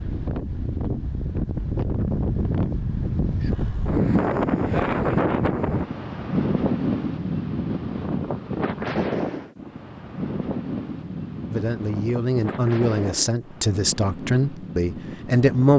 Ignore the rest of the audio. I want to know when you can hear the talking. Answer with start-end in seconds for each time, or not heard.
11.5-15.7.